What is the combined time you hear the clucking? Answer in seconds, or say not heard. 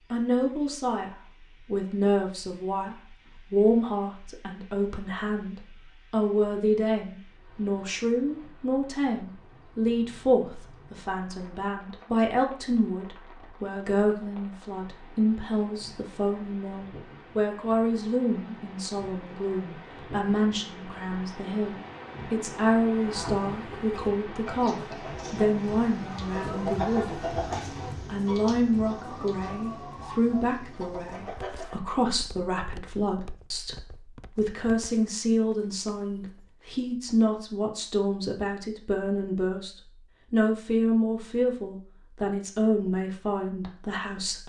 9 s.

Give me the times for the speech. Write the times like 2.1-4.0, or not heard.
0.1-27.2, 28.1-44.4.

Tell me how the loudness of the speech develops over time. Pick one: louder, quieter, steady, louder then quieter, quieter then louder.
steady.